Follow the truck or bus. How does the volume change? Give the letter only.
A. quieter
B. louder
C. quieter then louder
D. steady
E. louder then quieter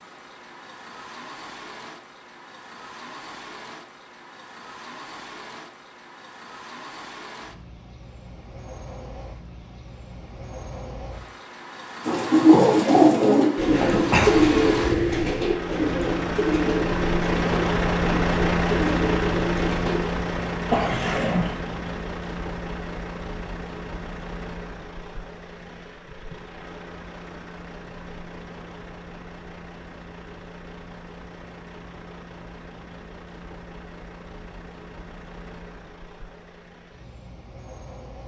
E.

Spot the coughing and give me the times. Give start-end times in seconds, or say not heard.
13.7-15.4, 20.7-21.6.